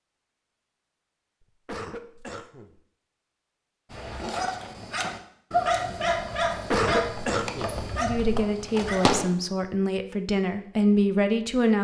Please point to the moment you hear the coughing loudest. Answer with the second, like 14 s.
7 s.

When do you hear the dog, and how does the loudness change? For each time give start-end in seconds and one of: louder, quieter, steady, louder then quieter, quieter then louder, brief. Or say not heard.
3.9-9.2 louder then quieter.